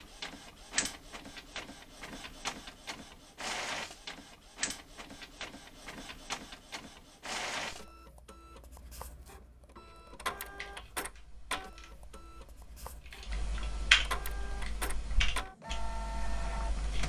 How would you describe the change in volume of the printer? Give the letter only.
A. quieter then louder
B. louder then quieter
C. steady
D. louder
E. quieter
C.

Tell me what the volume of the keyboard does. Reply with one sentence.
The volume of the keyboard goes up, then down.